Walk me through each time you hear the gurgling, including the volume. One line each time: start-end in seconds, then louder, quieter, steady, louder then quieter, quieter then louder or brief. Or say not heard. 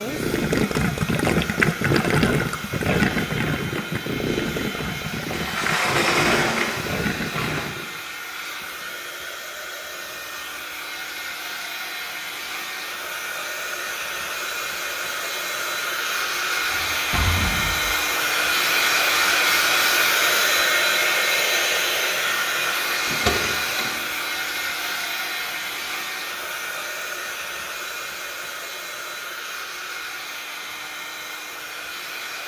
0.0-8.0 quieter.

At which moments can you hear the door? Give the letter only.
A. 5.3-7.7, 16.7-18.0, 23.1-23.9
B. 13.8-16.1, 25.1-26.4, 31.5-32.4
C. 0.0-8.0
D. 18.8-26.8
A.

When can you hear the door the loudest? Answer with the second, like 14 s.
6 s.